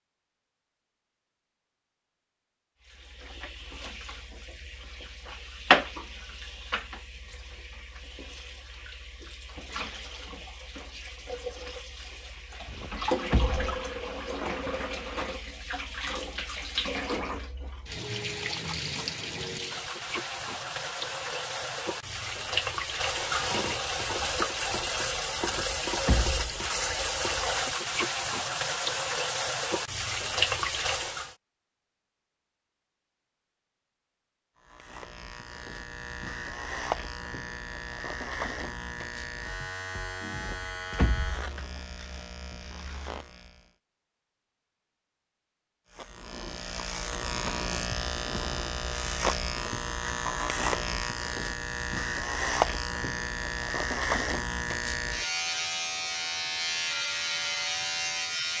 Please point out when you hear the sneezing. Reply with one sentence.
You can't hear the sneezing here.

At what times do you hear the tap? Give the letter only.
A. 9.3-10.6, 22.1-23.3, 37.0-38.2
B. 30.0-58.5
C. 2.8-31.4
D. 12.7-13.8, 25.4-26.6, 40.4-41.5
C.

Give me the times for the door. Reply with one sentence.
The door can be heard from 12.7 to 13.8 s, from 25.4 to 26.6 s and from 40.4 to 41.5 s.